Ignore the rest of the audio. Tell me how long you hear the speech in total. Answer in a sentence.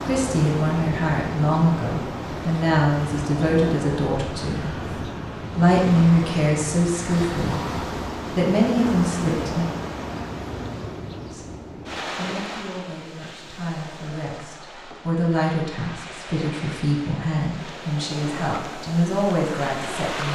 The speech can be heard for 18 seconds in total.